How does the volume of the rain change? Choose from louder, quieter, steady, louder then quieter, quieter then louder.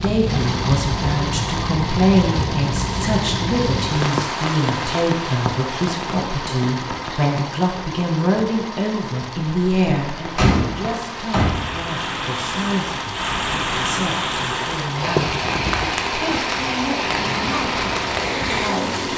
quieter then louder.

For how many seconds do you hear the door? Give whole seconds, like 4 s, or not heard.
2 s.